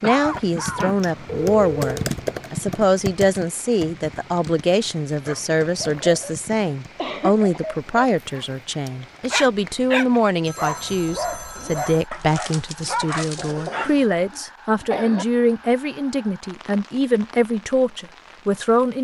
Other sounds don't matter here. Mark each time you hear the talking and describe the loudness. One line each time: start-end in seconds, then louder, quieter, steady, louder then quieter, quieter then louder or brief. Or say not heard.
0.0-18.9 steady.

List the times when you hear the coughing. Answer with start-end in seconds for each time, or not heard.
0.0-1.3, 7.0-7.6, 13.2-15.2.